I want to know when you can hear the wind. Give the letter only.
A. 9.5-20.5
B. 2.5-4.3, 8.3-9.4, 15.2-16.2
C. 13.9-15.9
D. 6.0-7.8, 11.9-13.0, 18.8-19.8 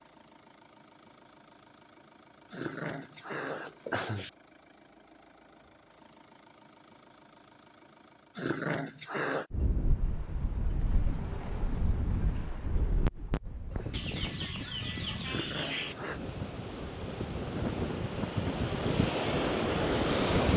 A.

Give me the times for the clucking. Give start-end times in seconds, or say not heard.
13.9-15.9.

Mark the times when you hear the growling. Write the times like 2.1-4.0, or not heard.
2.5-4.3, 8.3-9.4, 15.2-16.2.